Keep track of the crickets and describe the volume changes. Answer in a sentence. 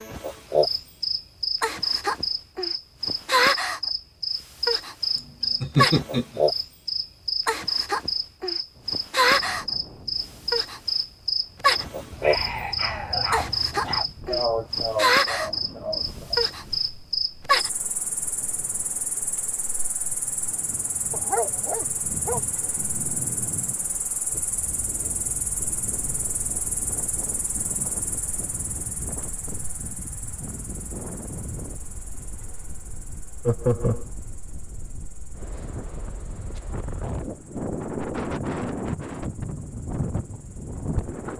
The loudness of the crickets goes down.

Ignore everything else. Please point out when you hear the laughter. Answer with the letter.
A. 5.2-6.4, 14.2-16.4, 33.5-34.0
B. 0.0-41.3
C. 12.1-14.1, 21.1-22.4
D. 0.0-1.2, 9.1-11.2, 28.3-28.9
A.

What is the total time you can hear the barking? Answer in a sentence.
You can hear the barking for 3 seconds altogether.